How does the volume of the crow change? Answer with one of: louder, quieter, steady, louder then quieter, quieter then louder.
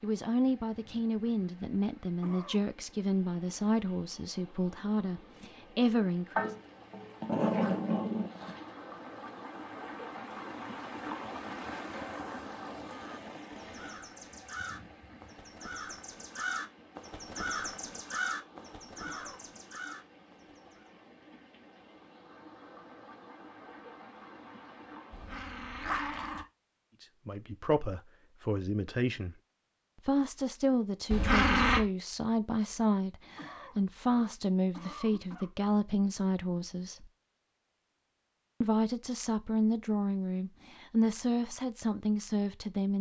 louder then quieter.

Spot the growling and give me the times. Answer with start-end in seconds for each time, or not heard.
6.3-8.6, 25.1-26.4, 31.1-31.8.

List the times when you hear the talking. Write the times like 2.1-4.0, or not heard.
0.0-6.5, 27.0-29.4, 29.9-37.1, 38.6-42.9.